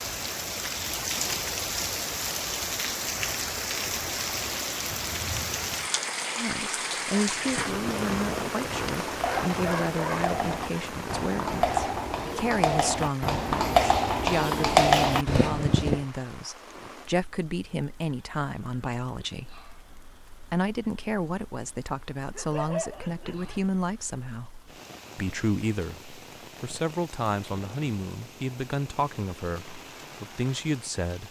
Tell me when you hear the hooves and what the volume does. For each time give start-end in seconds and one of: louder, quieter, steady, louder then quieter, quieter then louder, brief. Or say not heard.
7.2-16.1 louder.